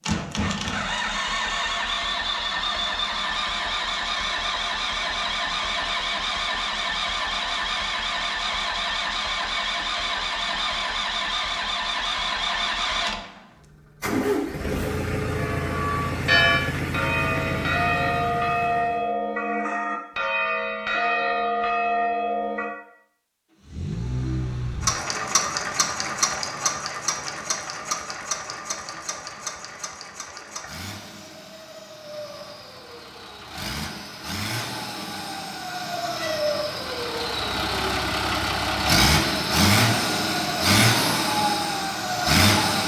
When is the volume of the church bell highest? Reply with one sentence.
The volume of the church bell peaks at 16 seconds.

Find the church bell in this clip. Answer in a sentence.
The church bell can be heard from 15.3 to 22.8 s.